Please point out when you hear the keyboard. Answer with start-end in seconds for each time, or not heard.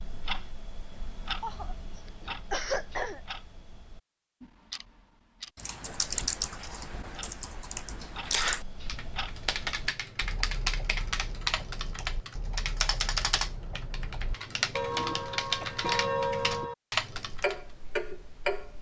5.5-17.6.